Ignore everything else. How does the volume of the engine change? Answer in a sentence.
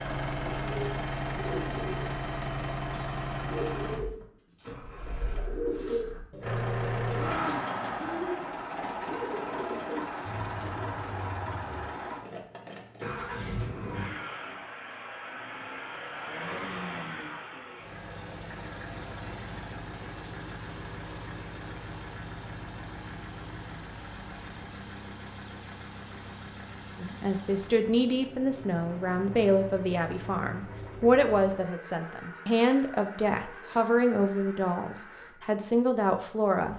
The loudness of the engine goes down.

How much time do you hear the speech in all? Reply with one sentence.
You can hear the speech for 10 seconds altogether.